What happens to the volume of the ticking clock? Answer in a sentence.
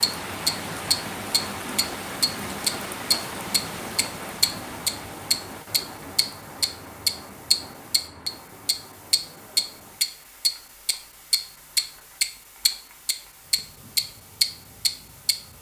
The volume of the ticking clock stays about the same.